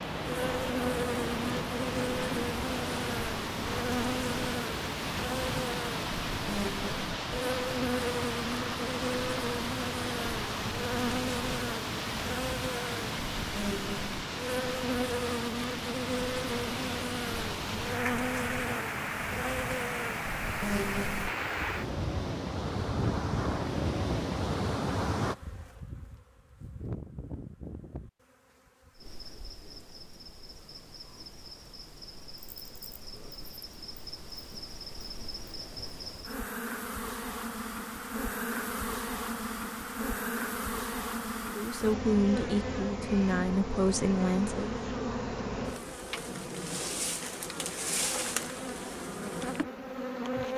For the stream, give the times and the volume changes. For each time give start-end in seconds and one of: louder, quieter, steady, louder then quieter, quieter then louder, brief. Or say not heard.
0.0-25.4 steady.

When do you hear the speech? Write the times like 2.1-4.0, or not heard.
41.5-44.8.